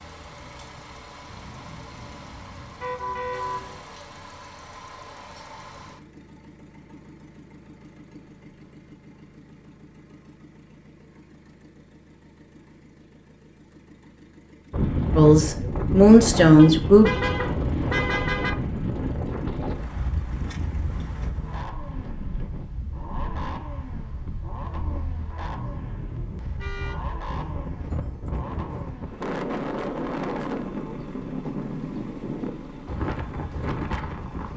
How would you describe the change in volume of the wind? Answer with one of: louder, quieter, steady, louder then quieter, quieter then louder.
quieter then louder.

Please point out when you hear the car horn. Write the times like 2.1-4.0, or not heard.
1.2-3.9, 16.6-18.5, 26.6-27.0.